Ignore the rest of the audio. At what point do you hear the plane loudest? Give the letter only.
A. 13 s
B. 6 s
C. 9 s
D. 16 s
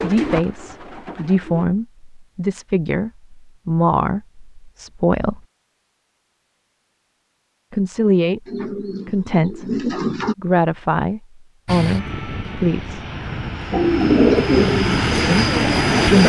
D.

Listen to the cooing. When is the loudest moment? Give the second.
14 s.